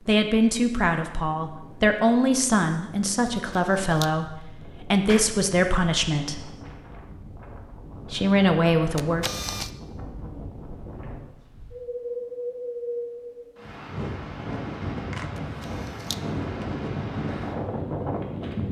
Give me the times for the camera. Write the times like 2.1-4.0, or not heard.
3.5-4.1, 8.9-9.7, 15.3-16.2.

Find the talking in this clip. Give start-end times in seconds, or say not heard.
0.1-6.5, 8.1-9.2.